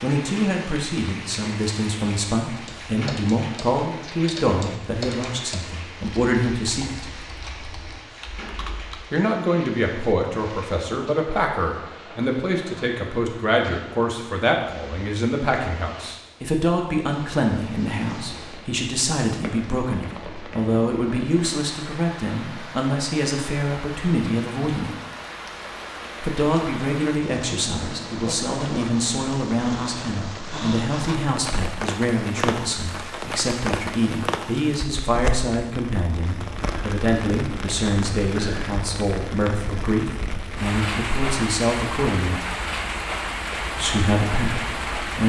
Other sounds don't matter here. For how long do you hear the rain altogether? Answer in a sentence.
The rain can be heard for 45 seconds in total.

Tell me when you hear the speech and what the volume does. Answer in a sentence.
You can hear the speech from 0.0 to 7.0 s, at a steady volume; from 9.1 to 24.9 s, at a steady volume; from 26.2 to 42.5 s, at a steady volume; and briefly from 43.8 to 45.2 s.